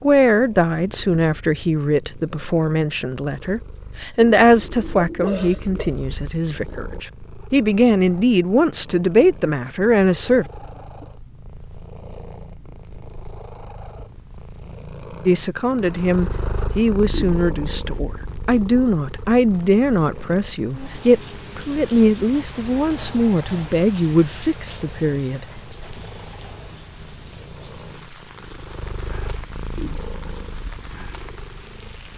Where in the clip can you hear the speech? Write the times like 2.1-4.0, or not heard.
0.0-10.4, 15.2-25.4.